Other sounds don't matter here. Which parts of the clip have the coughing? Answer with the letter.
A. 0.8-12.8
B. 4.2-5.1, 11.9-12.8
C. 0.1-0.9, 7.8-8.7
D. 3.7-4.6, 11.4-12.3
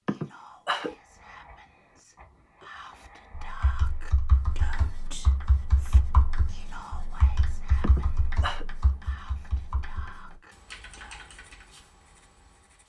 C.